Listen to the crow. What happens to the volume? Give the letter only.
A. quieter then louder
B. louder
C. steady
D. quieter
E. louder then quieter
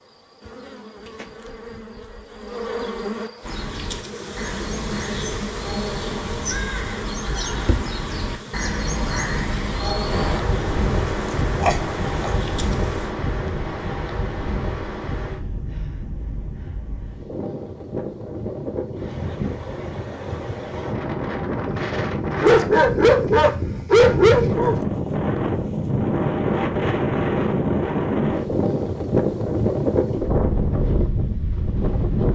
B.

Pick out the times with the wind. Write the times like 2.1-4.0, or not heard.
10.1-32.3.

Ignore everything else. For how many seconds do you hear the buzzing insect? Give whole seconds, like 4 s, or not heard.
13 s.